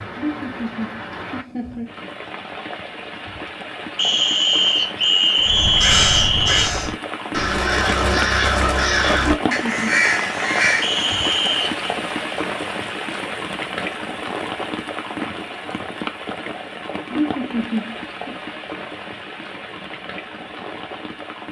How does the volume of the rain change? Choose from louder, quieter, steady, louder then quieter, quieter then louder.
louder then quieter.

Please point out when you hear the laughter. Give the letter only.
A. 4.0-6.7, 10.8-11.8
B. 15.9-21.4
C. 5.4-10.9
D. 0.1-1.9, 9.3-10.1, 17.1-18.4
D.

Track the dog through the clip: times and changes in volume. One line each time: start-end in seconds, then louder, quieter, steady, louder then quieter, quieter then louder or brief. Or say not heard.
not heard.